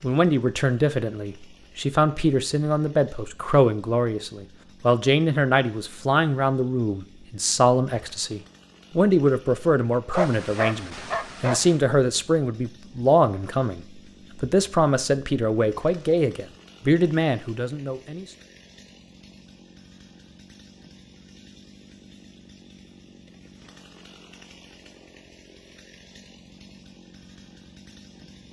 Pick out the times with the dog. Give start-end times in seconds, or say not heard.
10.1-11.8.